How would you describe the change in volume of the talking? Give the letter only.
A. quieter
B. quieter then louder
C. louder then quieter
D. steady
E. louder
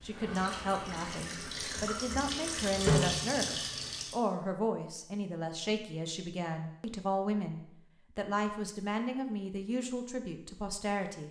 D.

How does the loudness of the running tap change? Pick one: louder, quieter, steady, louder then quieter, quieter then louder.
louder then quieter.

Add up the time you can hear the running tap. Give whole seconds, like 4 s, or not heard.
4 s.